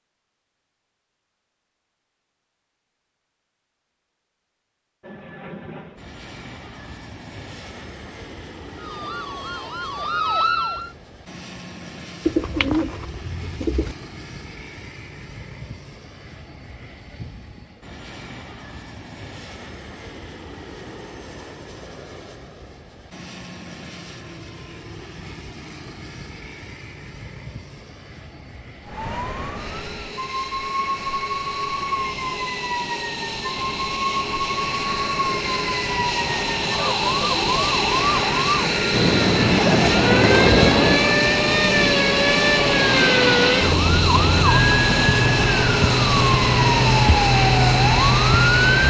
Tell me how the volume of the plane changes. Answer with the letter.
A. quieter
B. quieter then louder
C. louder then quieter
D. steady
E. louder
E.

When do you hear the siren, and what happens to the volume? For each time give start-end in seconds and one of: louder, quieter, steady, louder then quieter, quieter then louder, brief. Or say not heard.
8.8-10.9 brief
28.9-48.8 louder.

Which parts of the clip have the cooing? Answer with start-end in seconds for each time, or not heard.
12.2-13.9, 38.9-41.0.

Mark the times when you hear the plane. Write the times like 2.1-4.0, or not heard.
5.0-48.8.